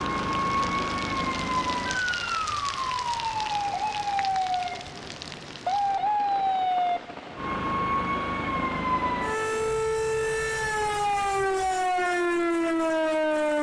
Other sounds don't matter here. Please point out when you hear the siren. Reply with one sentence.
You can hear the siren from 0.0 to 13.5 s.